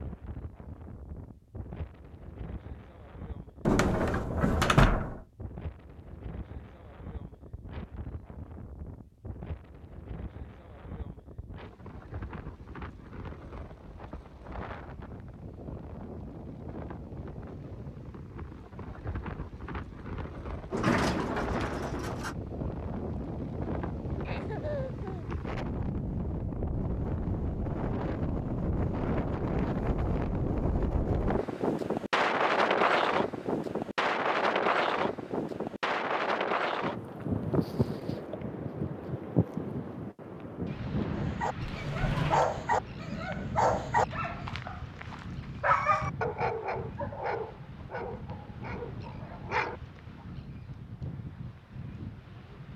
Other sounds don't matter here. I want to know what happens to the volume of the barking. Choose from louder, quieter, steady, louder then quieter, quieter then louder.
quieter.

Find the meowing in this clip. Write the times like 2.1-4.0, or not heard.
not heard.